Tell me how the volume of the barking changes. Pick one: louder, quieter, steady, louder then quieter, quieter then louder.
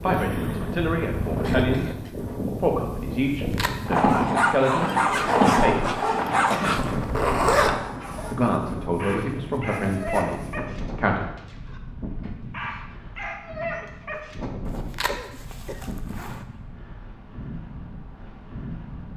quieter then louder.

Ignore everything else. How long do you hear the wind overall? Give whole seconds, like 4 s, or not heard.
19 s.